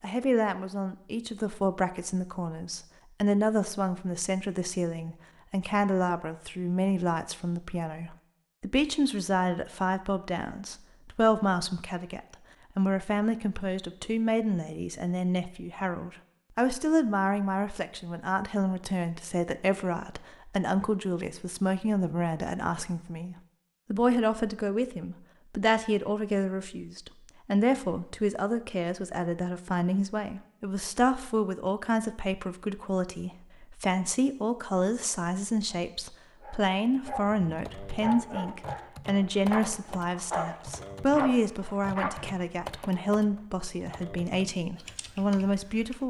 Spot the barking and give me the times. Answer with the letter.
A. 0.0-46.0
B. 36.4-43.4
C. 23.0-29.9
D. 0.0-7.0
B.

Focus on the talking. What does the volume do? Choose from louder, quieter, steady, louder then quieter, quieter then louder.
steady.